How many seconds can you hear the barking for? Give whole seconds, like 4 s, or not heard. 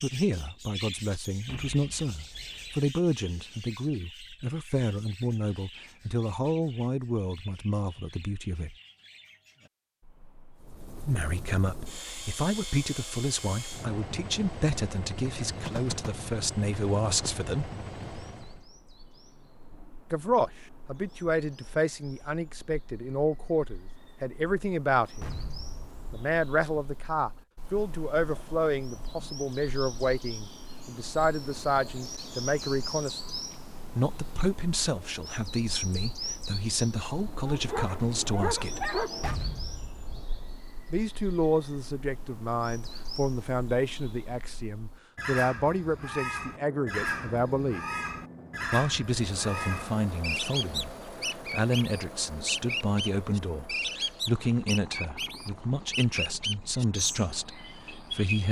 2 s.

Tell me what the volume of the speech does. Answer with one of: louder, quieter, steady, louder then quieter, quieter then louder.
steady.